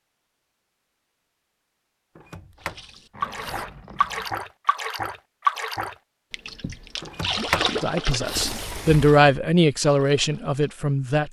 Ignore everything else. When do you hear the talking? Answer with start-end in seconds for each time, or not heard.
7.8-11.2.